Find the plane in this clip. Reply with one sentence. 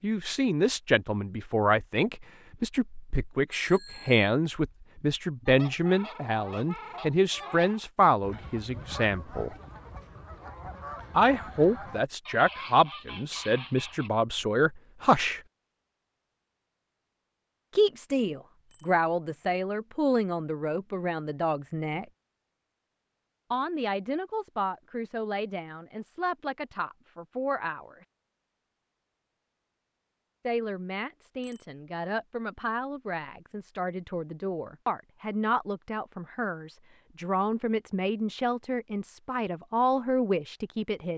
The plane can't be heard in this clip.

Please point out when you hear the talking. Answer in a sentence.
You can hear the talking from 0.0 to 9.6 s, from 11.2 to 15.4 s, from 17.8 to 22.1 s, from 23.5 to 28.1 s and from 30.4 to 41.1 s.